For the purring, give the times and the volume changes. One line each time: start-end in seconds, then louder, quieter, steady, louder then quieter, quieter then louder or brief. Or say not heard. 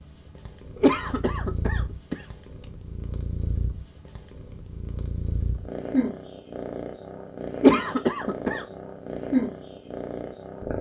0.0-10.7 louder.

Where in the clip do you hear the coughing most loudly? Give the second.
8 s.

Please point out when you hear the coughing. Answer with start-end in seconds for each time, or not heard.
0.8-2.2, 7.5-8.7.